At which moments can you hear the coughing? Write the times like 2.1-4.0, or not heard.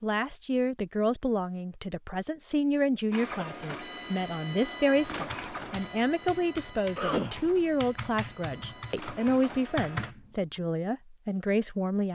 2.9-3.5, 7.0-7.5.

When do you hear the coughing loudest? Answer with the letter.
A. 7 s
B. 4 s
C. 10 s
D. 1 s
A.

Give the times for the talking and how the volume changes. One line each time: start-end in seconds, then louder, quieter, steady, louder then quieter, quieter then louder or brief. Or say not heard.
0.0-12.1 steady.